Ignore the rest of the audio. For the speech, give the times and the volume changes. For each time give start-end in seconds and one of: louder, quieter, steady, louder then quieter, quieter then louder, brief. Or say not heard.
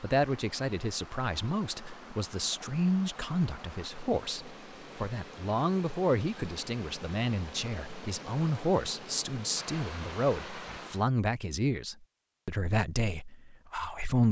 0.0-14.2 steady.